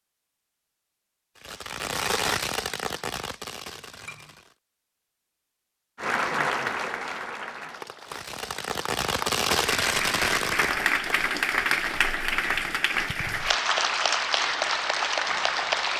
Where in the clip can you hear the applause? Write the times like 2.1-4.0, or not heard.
6.0-15.9.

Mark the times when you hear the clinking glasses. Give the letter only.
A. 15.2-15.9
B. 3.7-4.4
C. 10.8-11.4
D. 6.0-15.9
B.